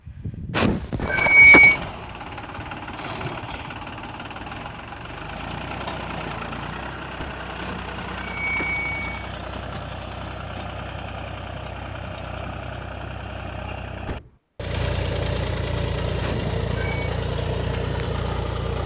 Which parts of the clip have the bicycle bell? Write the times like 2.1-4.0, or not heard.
0.6-1.8, 7.6-9.2, 16.2-17.1.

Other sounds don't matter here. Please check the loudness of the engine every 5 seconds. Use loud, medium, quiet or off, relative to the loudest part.
medium, medium, medium, loud.